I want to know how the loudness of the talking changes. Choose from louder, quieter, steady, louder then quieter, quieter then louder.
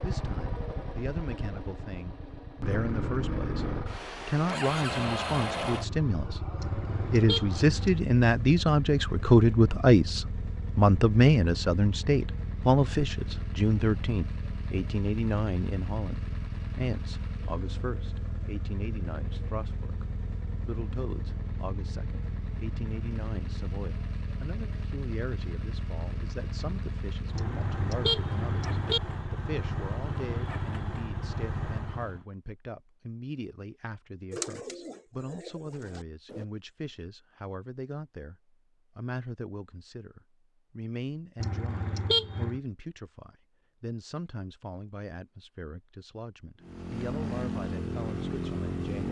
quieter.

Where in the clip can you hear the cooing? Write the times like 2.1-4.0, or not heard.
34.3-36.5.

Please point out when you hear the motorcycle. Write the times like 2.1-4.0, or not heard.
0.0-32.2, 46.6-49.0.